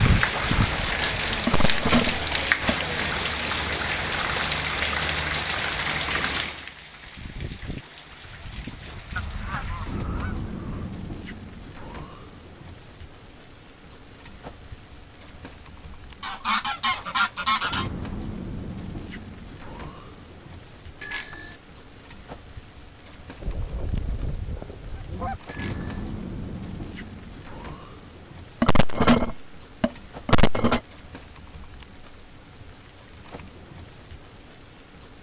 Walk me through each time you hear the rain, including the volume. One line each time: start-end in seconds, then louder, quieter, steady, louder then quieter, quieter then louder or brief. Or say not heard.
0.0-35.1 quieter.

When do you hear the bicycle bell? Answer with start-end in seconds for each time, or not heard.
0.9-1.4, 21.0-21.6, 25.4-26.1.